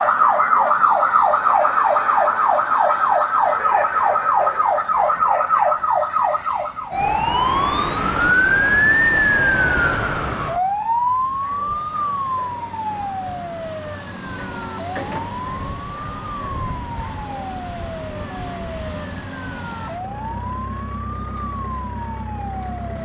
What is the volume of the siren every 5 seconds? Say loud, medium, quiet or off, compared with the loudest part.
loud, loud, medium, quiet, quiet.